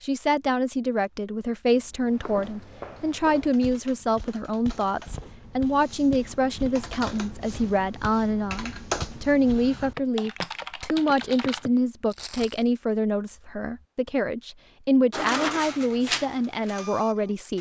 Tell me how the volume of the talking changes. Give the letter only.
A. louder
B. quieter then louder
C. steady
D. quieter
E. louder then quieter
C.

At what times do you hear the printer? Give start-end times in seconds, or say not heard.
15.1-17.5.